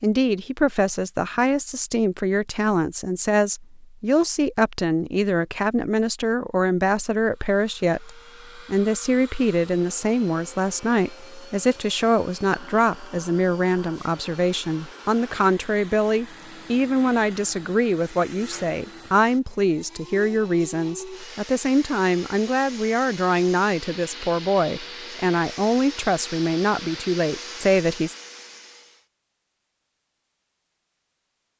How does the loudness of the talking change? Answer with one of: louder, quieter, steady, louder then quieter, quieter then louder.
steady.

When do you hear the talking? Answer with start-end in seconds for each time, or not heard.
0.0-28.1.